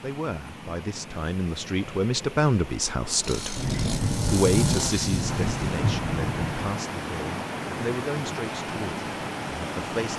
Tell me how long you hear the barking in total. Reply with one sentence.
You can't hear the barking here.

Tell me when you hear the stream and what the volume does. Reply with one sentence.
The stream can be heard from 0.0 to 10.1 s, getting louder.